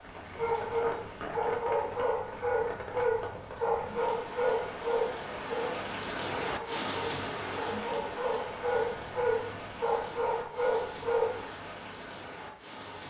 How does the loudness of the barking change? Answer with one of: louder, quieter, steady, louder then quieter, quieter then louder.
steady.